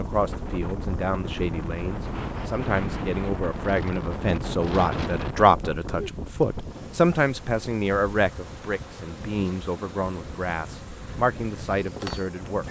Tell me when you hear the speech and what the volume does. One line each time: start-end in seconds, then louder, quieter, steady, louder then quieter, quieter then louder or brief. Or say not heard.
0.0-12.6 louder then quieter.